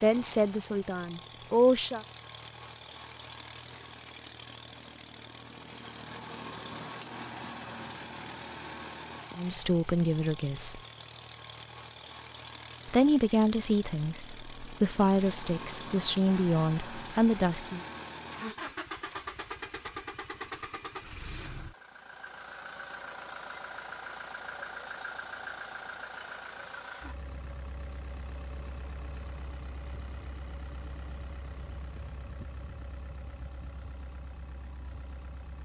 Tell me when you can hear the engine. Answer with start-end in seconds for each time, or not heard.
0.0-35.6.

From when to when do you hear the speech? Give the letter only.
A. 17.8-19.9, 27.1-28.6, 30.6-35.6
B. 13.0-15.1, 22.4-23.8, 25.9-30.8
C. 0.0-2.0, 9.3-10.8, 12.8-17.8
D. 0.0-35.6
C.